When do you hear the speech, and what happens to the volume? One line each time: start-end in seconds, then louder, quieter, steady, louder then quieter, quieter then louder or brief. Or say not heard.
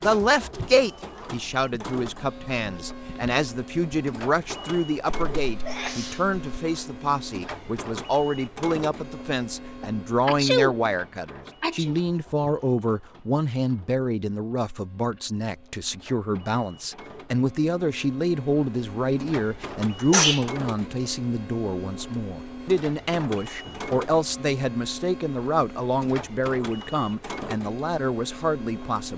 0.0-29.1 steady.